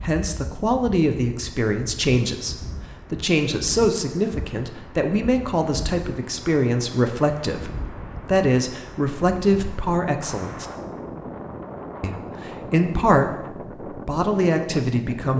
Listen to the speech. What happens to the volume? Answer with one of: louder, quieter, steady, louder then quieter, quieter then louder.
steady.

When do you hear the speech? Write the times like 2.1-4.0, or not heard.
0.0-10.7, 12.0-15.3.